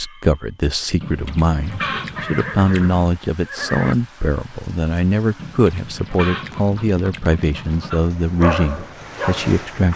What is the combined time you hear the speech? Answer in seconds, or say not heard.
10 s.